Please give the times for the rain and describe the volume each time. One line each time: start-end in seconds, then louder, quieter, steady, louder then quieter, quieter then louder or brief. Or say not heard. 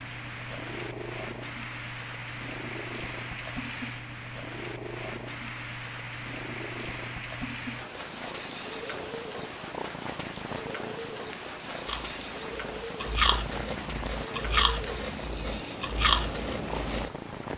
0.0-17.5 steady.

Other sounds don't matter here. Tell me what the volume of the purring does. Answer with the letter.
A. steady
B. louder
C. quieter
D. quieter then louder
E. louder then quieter
A.